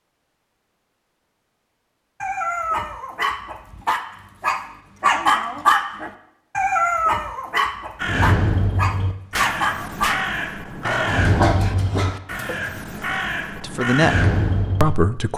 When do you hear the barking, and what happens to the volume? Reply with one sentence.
You can hear the barking from 2.2 to 12.8 s, getting louder then quieter.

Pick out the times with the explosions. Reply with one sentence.
You can hear the explosions from 9.3 to 10.2 s.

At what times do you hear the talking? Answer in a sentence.
You can hear the talking from 13.6 to 15.3 s.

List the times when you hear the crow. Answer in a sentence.
The crow can be heard from 8.0 to 14.9 s.